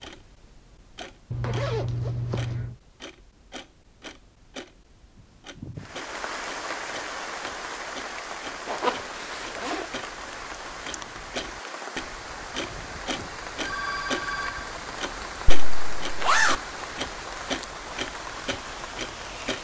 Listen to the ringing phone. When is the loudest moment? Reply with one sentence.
The loudest moment of the ringing phone is at 14 seconds.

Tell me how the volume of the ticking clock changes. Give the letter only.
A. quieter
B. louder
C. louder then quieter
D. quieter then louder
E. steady
B.